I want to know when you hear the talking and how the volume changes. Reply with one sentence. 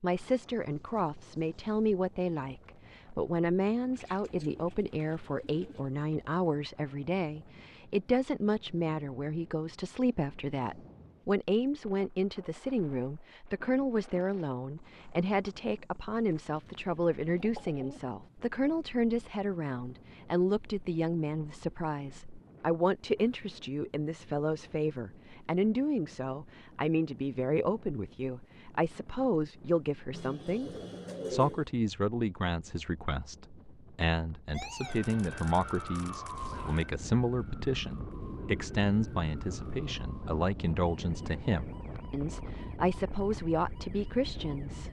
The talking can be heard from 0.0 to 30.7 s, at a steady volume; and from 31.3 to 44.8 s, at a steady volume.